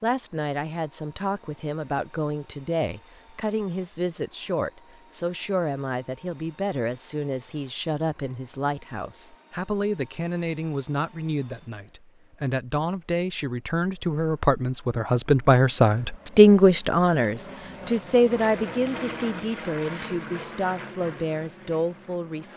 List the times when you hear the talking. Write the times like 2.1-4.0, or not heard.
0.0-22.5.